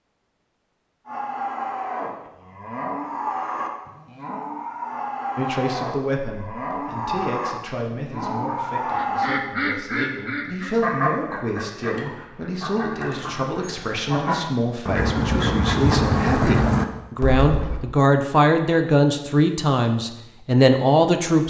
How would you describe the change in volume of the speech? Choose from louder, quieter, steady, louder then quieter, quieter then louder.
louder.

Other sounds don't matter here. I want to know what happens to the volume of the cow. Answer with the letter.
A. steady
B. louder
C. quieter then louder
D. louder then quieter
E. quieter
A.